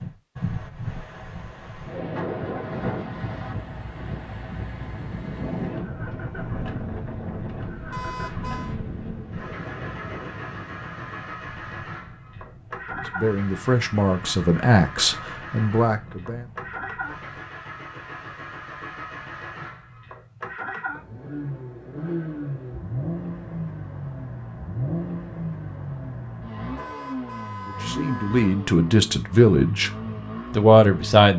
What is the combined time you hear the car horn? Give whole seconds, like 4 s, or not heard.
3 s.